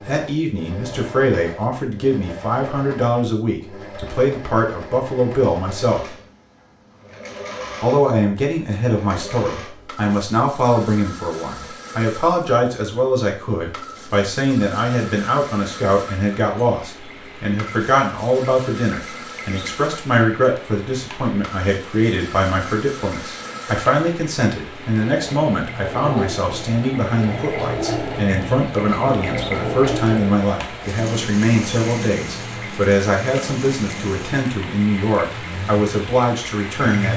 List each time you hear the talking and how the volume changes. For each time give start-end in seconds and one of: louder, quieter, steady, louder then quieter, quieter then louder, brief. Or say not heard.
0.1-6.2 steady
7.8-37.1 steady.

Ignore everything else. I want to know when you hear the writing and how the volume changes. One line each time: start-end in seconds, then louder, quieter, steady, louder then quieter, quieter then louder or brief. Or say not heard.
not heard.